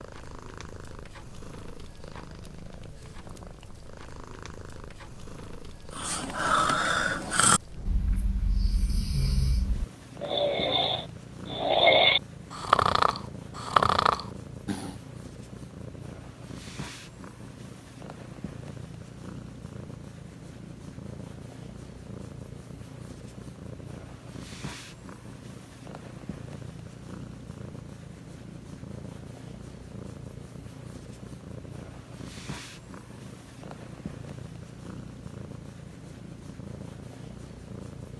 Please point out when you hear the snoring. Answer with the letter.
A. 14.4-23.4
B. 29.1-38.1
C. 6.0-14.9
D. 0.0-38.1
C.